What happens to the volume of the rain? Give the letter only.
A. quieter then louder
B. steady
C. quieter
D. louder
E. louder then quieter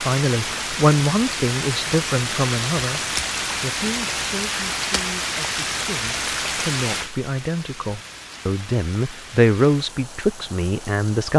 C.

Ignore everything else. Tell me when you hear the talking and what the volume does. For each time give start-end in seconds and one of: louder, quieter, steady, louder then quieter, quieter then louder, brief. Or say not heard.
0.0-11.3 quieter then louder.